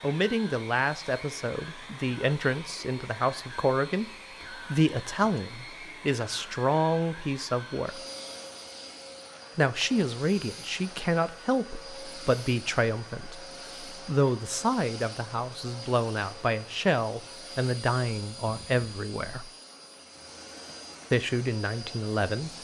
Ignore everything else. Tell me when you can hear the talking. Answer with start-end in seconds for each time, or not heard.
0.0-8.0, 9.6-19.5, 21.1-22.5.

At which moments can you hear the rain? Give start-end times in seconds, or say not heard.
not heard.